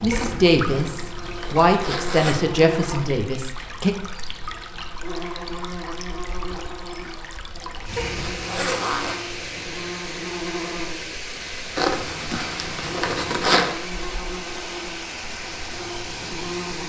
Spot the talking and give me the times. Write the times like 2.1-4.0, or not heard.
0.0-4.0.